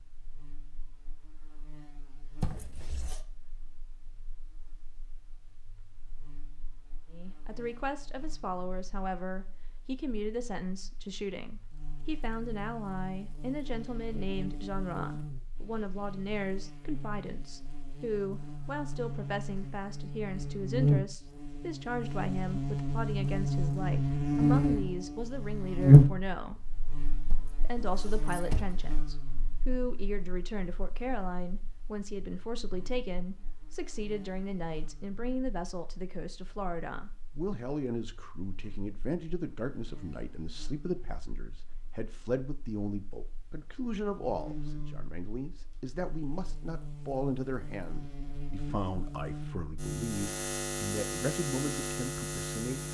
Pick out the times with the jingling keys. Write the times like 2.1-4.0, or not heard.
2.4-3.2, 27.3-28.8.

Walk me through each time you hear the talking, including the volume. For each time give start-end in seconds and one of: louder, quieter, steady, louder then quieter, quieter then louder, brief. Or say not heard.
7.1-26.8 steady
27.6-52.8 steady.